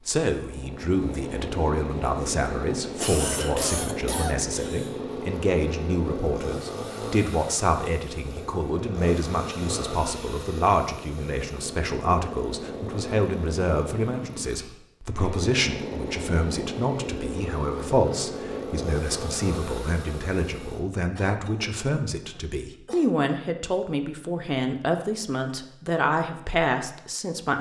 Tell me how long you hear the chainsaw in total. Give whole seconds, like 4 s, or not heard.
21 s.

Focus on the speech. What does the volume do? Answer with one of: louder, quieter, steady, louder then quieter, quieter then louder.
steady.